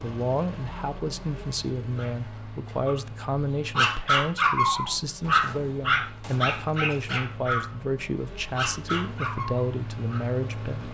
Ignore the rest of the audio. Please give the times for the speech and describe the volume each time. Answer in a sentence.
The speech can be heard from 0.0 to 10.8 s, at a steady volume.